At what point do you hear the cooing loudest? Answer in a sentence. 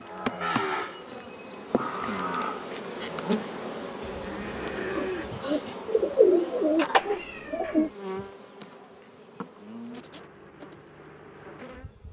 The loudest moment of the cooing is at 6 seconds.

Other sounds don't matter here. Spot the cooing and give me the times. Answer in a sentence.
The cooing can be heard from 5.0 to 7.9 s.